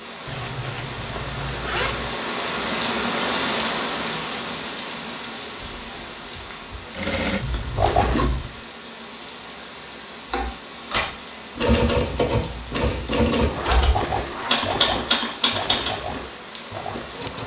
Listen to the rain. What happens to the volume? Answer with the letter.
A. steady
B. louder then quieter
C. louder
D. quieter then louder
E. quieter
E.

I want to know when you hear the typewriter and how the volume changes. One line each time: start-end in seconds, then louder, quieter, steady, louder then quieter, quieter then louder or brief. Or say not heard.
10.3-15.9 steady.